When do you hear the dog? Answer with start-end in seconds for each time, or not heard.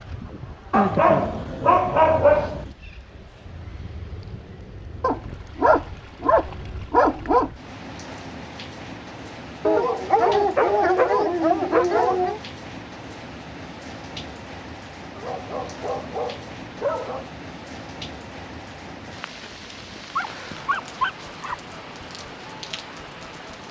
0.7-2.7, 5.0-7.5, 9.7-12.4, 15.2-17.3, 20.1-21.6.